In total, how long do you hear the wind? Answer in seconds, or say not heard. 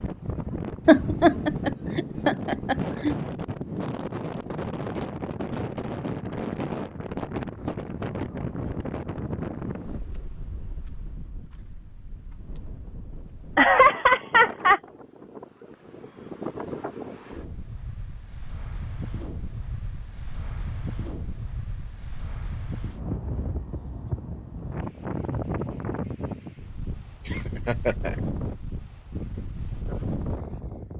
31 s.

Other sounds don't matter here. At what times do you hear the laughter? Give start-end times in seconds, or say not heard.
0.8-3.1, 13.6-14.8, 27.2-28.1.